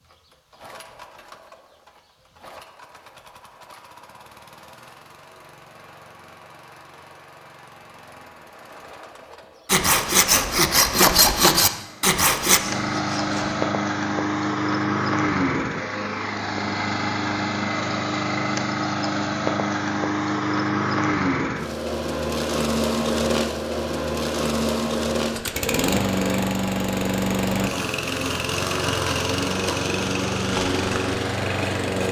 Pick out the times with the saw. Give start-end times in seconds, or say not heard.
9.7-13.6.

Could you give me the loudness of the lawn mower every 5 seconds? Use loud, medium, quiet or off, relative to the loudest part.
quiet, quiet, loud, loud, loud, loud, loud.